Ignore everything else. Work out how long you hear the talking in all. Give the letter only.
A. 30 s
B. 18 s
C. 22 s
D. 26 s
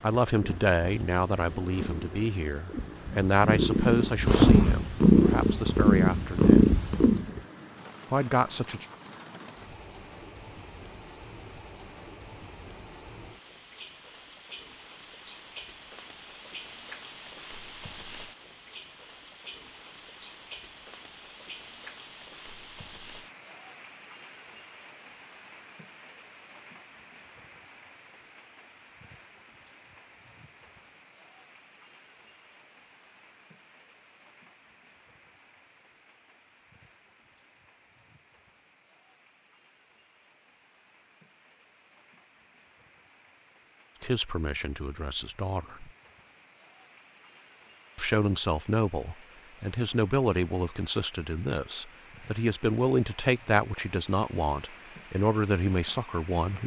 B.